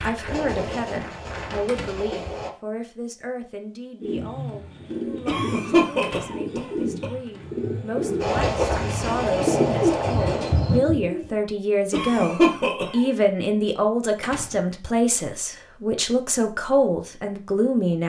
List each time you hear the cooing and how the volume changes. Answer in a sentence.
The cooing can be heard from 4.0 to 11.3 s, getting louder.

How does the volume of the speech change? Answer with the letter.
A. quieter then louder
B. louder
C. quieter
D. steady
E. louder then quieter
A.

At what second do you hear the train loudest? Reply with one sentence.
The loudest moment of the train is at 9 seconds.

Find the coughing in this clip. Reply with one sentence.
You can hear the coughing from 5.2 to 7.1 s and from 11.9 to 13.2 s.